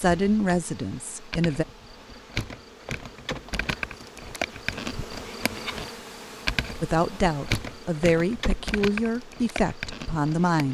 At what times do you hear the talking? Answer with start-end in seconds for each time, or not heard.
0.0-1.6, 6.8-10.6.